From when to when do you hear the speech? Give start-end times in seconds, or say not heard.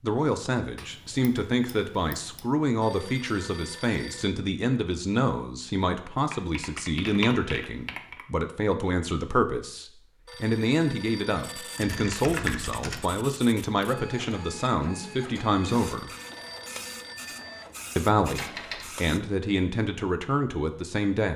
0.0-16.1, 17.9-21.3.